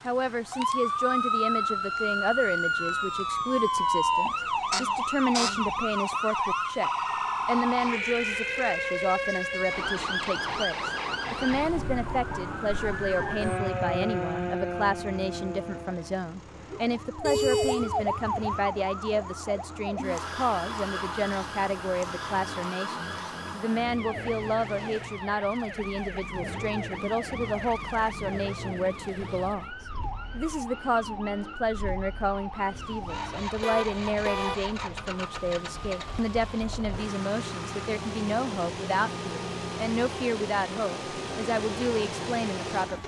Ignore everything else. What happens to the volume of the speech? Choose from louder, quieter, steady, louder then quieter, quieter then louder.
steady.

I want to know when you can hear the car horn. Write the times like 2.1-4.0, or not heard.
17.2-18.6, 32.7-34.5.